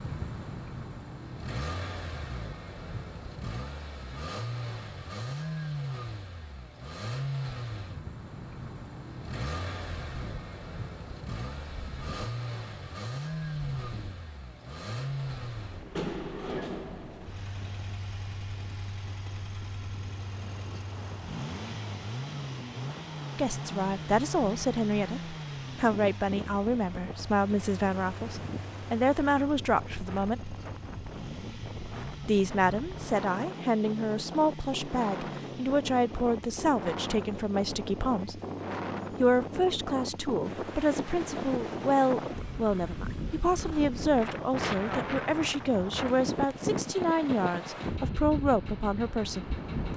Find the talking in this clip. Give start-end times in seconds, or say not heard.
23.4-30.6, 32.2-38.4, 39.2-49.9.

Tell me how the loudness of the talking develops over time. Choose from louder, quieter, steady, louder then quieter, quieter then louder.
steady.